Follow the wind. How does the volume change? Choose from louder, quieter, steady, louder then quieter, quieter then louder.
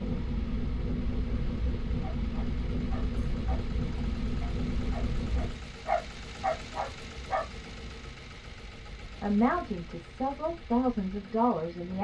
quieter.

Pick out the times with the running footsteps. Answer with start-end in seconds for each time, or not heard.
not heard.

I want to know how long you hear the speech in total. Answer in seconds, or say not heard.
3 s.